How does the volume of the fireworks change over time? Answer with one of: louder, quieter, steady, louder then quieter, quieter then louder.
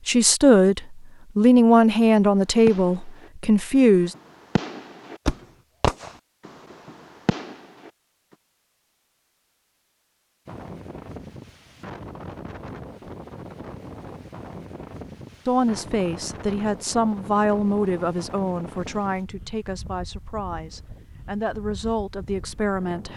louder then quieter.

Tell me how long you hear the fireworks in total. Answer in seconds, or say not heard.
6 s.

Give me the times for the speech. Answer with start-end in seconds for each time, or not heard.
0.1-4.2, 15.4-23.1.